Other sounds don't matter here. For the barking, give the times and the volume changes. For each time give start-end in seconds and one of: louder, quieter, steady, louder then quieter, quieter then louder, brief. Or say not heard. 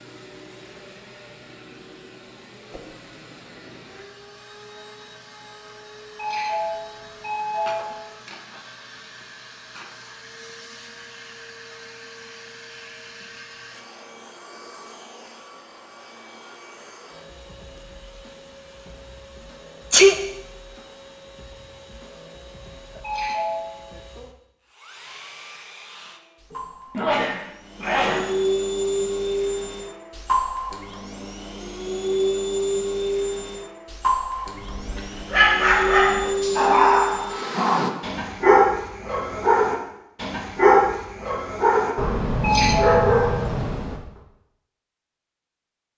34.6-44.0 steady.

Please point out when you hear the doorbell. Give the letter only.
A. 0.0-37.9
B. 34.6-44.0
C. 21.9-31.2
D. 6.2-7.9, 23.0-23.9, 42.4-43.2
D.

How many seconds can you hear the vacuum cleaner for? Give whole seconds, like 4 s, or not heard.
38 s.